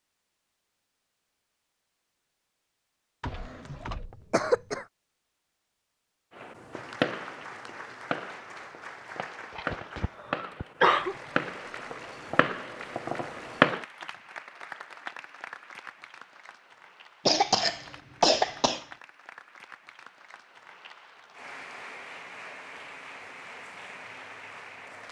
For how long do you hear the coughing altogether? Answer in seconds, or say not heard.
5 s.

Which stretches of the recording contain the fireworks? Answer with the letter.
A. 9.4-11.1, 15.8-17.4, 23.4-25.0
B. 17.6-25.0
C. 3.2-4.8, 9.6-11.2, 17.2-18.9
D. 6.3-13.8
D.